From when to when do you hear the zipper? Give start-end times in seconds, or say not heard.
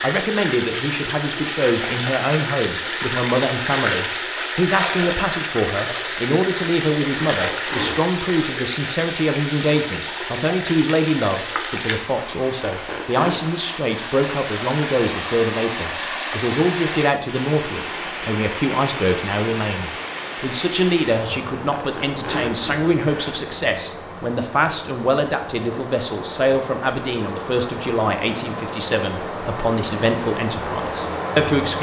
7.3-8.0, 12.7-13.4, 21.7-23.4.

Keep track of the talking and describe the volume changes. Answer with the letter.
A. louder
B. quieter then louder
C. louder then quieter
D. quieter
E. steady
E.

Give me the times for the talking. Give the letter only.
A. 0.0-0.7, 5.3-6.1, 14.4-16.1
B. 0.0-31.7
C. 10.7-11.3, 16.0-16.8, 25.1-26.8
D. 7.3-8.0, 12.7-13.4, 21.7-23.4
B.